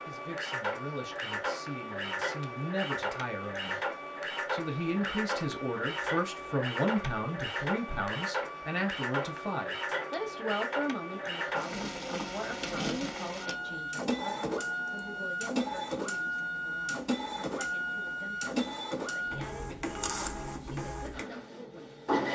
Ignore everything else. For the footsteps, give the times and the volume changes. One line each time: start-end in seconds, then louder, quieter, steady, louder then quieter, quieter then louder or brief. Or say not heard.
not heard.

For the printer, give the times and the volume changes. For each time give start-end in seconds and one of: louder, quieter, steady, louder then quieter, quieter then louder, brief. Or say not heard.
0.0-22.2 steady.